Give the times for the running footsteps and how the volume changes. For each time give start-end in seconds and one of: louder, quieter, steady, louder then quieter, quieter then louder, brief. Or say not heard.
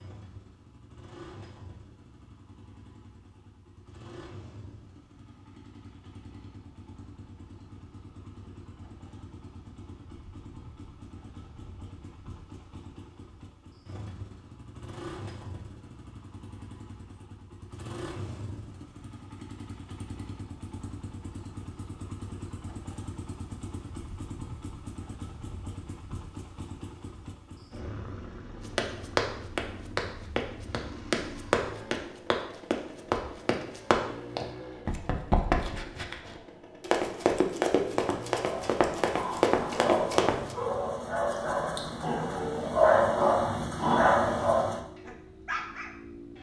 28.6-40.5 steady.